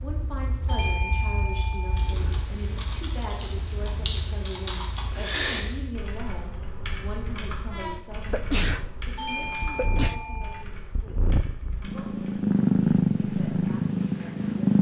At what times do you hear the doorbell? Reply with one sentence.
The doorbell can be heard from 0.7 to 2.1 s and from 9.2 to 10.7 s.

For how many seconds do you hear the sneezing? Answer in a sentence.
The sneezing can be heard for 2 seconds in total.